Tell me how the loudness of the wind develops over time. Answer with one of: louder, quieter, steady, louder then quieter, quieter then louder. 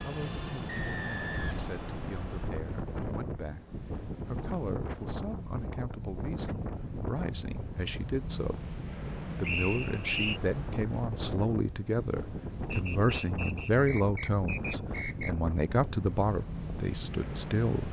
steady.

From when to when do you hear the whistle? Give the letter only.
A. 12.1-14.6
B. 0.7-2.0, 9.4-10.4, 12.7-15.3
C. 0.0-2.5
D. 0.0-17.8
B.